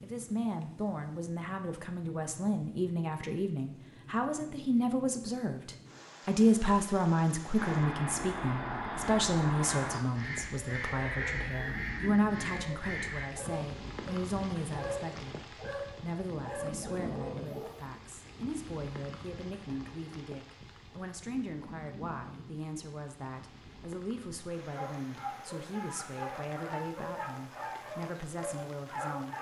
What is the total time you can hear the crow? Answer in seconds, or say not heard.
6 s.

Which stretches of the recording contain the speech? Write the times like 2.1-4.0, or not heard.
0.0-29.3.